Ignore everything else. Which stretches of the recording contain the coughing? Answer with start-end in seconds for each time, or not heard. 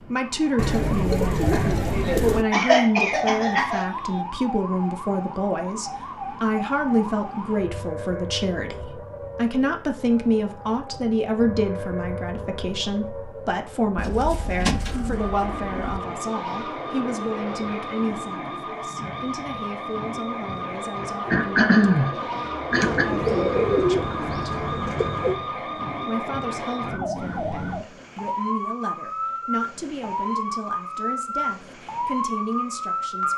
1.4-3.9, 21.3-23.1.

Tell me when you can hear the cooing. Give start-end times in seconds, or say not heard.
0.6-2.5, 13.9-16.0, 22.7-25.4.